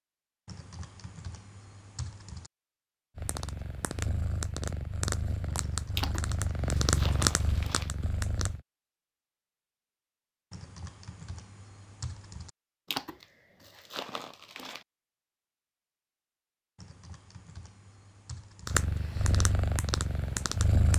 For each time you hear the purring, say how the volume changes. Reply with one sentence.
You can hear the purring from 3.1 to 8.7 s, getting louder then quieter; and briefly from 18.6 to 20.9 s.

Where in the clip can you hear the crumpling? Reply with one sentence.
You can hear the crumpling from 6.0 to 7.9 s and from 12.9 to 14.8 s.